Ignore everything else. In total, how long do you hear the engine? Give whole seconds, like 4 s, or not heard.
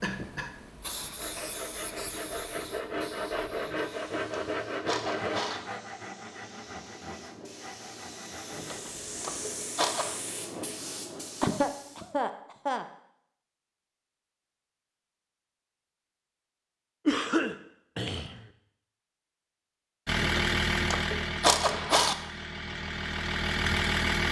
4 s.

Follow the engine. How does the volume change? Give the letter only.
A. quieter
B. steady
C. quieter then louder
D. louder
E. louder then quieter
C.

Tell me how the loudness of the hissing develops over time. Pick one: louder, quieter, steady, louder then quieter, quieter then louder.
quieter then louder.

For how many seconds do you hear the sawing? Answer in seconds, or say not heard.
8 s.